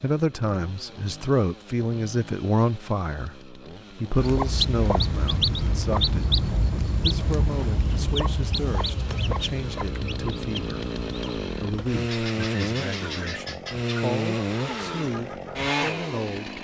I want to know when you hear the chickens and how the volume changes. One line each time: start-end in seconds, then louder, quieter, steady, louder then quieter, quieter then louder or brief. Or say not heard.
4.1-15.6 quieter.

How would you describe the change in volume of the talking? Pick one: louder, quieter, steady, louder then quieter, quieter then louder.
quieter.